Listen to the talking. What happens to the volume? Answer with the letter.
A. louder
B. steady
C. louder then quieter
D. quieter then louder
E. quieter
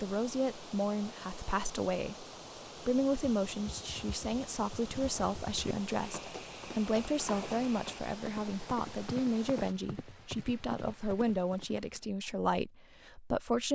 B.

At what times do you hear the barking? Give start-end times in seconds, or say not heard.
not heard.